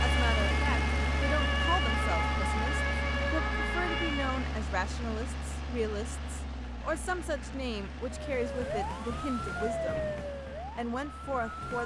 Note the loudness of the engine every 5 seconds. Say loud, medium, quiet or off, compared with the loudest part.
loud, medium, quiet.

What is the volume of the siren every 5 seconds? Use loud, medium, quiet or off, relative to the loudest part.
loud, loud, medium.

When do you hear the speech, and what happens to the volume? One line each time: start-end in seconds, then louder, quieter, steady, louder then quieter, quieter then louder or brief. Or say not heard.
0.0-10.2 steady
10.8-11.8 brief.